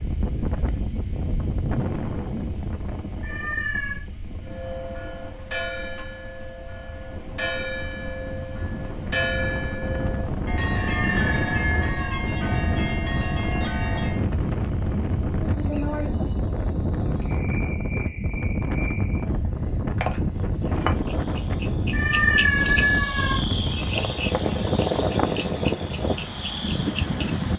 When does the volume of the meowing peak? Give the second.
22 s.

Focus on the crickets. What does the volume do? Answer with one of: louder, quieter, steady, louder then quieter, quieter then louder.
louder.